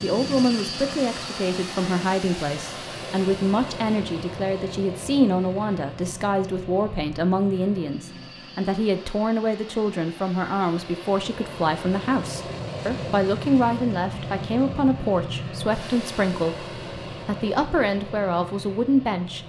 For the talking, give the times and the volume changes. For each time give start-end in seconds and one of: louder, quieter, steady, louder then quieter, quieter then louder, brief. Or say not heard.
0.0-19.4 steady.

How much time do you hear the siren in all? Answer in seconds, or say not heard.
not heard.